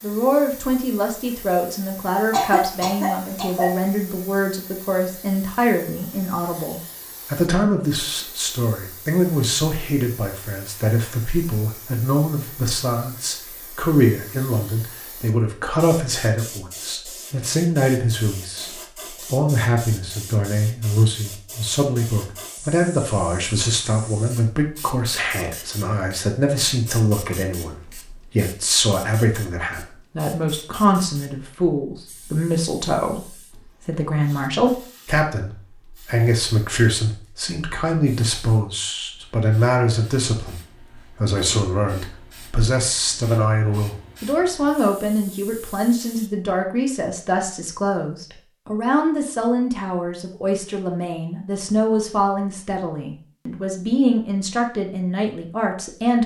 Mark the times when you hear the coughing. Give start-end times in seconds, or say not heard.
2.3-3.8.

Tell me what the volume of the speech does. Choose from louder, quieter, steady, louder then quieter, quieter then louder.
steady.